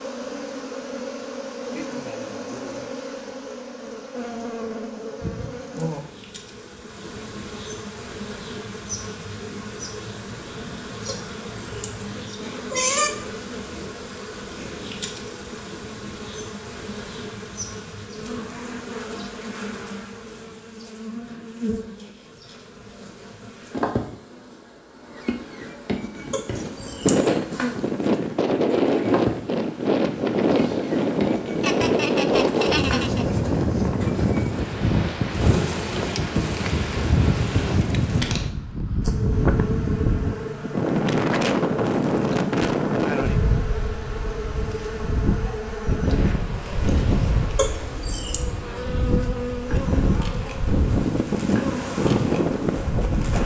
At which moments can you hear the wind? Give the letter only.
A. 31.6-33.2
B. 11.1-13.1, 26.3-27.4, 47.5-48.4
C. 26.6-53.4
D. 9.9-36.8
C.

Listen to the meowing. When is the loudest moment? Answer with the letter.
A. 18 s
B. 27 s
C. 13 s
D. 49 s
C.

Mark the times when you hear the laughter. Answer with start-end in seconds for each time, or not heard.
31.6-33.2.